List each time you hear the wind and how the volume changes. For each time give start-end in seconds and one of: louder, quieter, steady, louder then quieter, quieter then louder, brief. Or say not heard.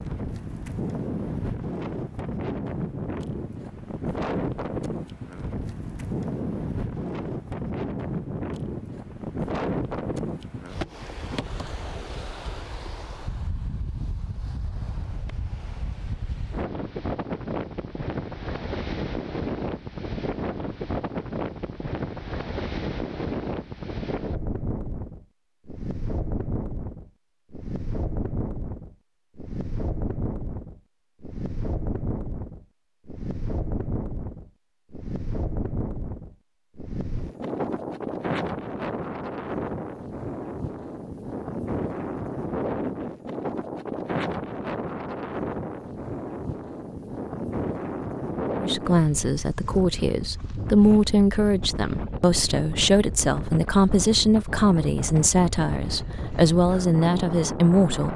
0.0-58.1 steady.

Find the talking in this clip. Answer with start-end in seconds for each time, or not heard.
48.5-58.1.